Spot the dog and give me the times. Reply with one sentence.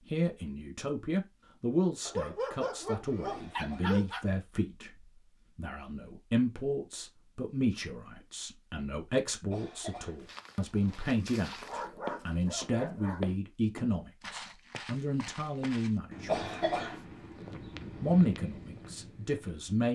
The dog can be heard from 2.0 to 4.2 s and from 11.6 to 13.2 s.